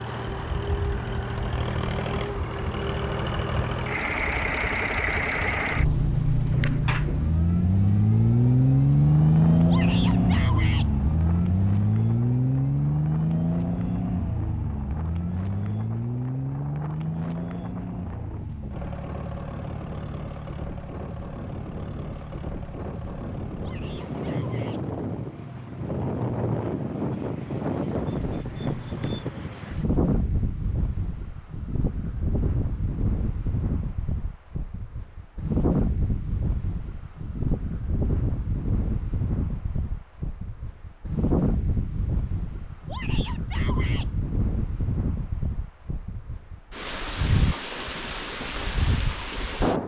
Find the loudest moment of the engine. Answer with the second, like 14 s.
9 s.